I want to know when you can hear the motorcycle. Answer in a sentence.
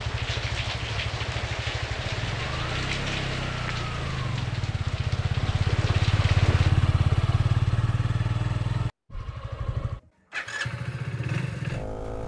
The motorcycle can be heard from 0.0 to 12.2 s.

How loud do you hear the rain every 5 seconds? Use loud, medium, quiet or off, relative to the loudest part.
loud, loud, off.